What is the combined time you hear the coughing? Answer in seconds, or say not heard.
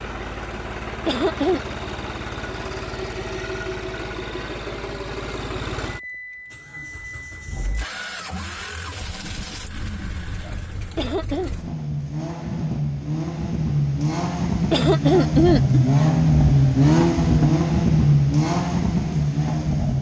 2 s.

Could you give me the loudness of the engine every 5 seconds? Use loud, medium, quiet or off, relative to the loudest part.
quiet, quiet, medium, loud.